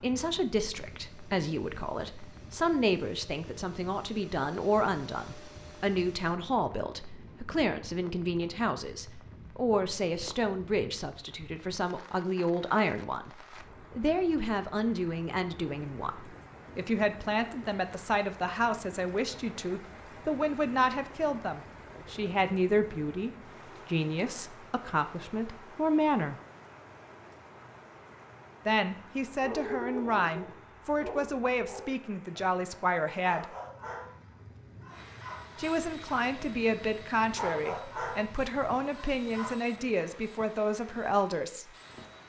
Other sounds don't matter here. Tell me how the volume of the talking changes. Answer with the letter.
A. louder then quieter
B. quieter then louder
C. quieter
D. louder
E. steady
E.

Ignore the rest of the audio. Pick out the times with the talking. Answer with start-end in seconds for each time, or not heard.
0.0-26.4, 28.6-33.5, 35.5-41.7.